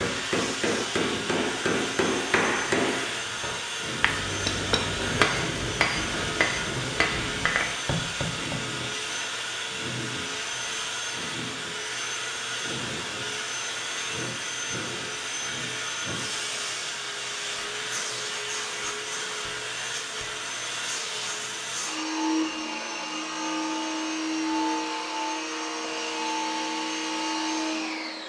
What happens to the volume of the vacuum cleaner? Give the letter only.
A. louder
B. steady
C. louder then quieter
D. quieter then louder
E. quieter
B.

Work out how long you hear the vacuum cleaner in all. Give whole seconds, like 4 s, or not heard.
28 s.